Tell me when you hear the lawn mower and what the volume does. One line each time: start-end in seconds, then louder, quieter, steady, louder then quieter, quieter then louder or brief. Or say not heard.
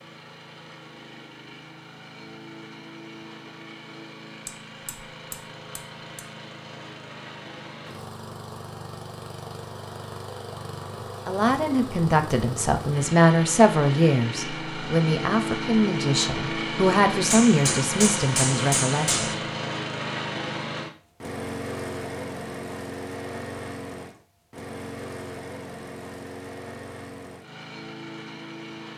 0.0-28.9 louder then quieter.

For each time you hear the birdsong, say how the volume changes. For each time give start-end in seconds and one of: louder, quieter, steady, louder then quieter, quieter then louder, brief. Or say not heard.
not heard.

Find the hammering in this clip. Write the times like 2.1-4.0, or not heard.
4.5-6.2, 17.3-19.4.